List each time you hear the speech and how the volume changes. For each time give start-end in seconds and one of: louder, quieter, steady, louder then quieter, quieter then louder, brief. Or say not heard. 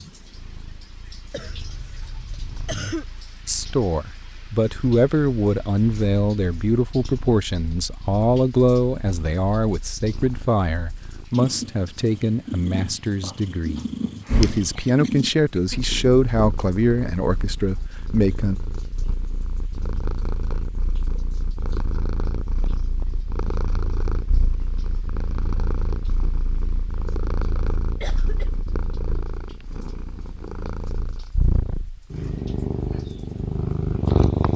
3.5-18.6 steady.